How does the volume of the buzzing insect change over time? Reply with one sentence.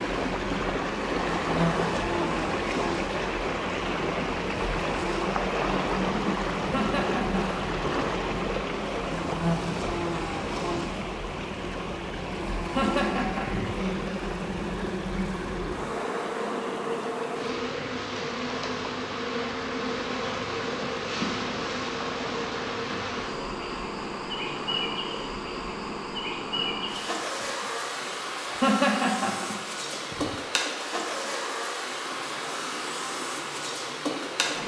The volume of the buzzing insect stays about the same.